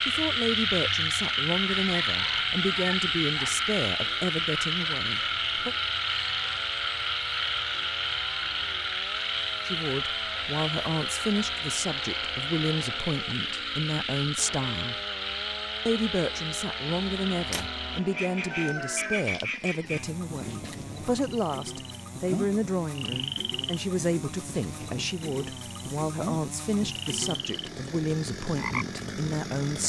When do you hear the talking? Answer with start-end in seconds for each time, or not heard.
0.0-5.8, 9.7-14.9, 15.8-29.8.